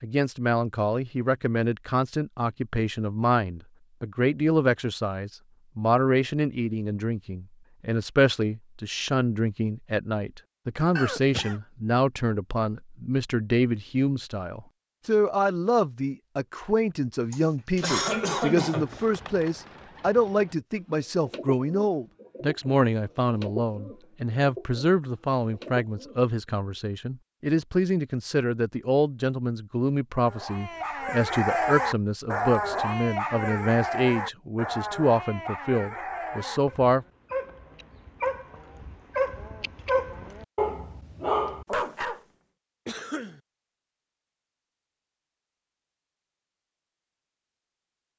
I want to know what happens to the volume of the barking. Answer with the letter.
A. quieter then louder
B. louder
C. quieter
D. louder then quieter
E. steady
A.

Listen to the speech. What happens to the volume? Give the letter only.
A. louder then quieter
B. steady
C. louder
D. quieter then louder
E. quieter
B.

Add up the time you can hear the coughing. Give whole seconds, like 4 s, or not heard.
3 s.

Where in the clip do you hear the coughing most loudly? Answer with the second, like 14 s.
18 s.